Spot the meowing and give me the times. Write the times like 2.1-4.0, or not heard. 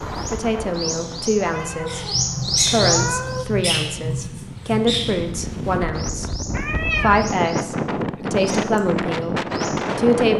1.4-3.5, 6.5-7.2.